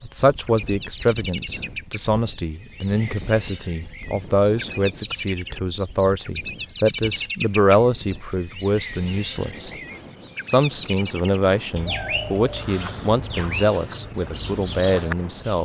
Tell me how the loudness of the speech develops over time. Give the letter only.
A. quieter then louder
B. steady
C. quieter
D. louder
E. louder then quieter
B.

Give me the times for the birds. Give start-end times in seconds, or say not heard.
0.0-15.6.